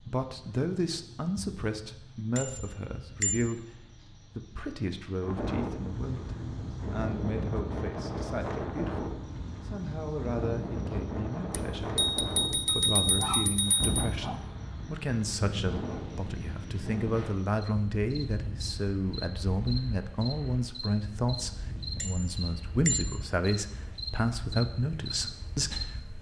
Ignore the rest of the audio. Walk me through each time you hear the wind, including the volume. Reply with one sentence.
The wind can be heard from 5.2 to 26.1 s, getting quieter.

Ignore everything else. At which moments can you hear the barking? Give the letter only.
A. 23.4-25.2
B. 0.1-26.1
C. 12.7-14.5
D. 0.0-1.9
C.